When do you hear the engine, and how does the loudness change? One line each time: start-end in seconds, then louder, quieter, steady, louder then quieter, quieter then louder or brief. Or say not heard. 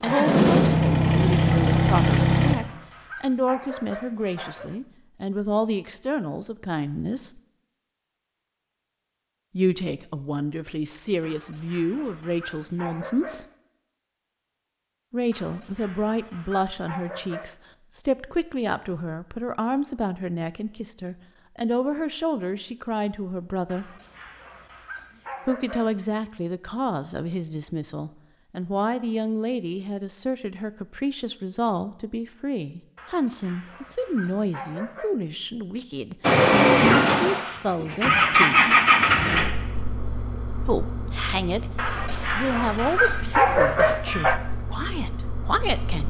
0.0-2.6 brief
36.2-46.0 quieter.